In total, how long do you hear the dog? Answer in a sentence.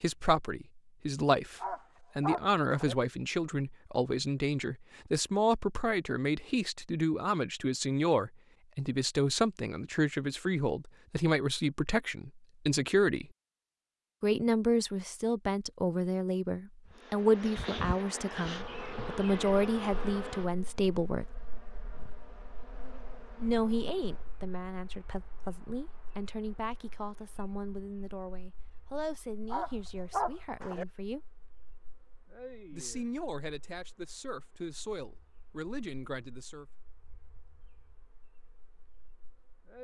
The dog can be heard for 3 seconds in total.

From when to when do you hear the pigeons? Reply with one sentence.
You can't hear the pigeons here.